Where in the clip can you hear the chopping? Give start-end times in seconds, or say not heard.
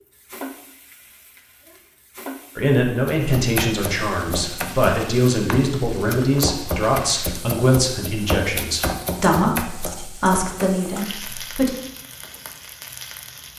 3.0-10.8.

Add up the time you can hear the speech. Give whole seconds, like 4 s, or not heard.
9 s.